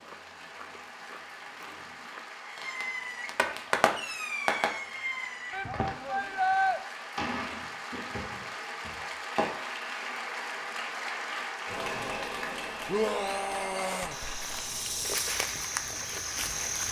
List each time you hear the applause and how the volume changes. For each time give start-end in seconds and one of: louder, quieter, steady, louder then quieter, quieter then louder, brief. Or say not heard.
0.0-16.8 louder then quieter.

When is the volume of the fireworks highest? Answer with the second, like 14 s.
4 s.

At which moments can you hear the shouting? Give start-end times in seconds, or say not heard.
5.5-6.8, 12.8-14.2.